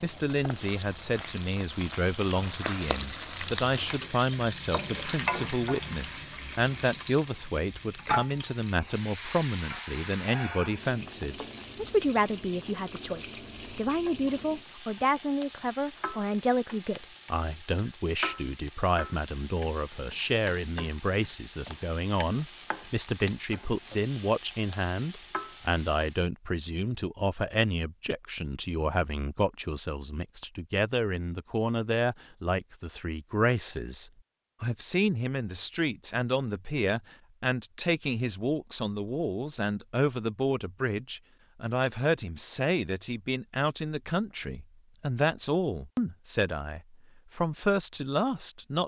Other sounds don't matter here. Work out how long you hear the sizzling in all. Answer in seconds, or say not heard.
26 s.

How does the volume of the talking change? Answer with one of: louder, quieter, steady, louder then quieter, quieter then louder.
steady.